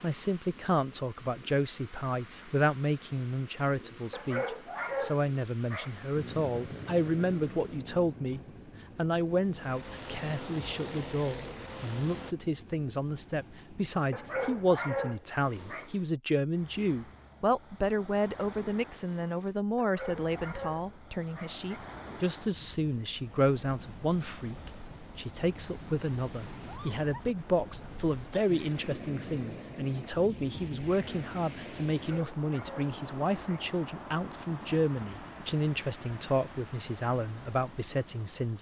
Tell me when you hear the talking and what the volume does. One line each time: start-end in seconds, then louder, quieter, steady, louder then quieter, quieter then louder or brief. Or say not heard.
0.0-38.5 steady.